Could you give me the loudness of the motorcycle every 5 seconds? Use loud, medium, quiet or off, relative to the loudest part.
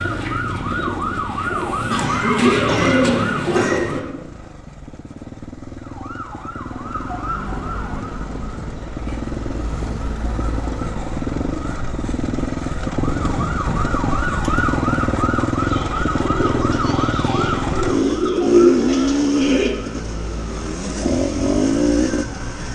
quiet, medium, loud, loud, loud.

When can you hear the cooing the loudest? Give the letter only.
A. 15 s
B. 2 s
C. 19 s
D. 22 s
C.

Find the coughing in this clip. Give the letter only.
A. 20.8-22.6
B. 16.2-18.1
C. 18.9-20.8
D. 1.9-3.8
D.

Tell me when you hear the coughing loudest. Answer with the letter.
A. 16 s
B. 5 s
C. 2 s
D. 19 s
C.